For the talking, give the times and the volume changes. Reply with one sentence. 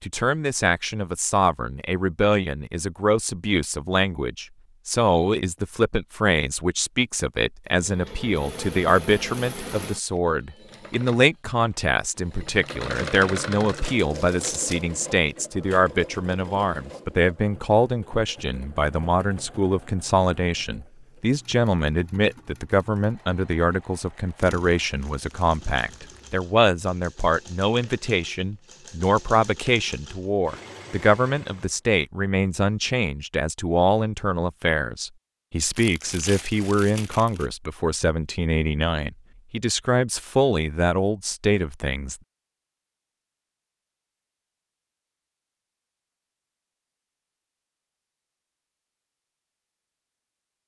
You can hear the talking from 0.0 to 42.1 s, at a steady volume.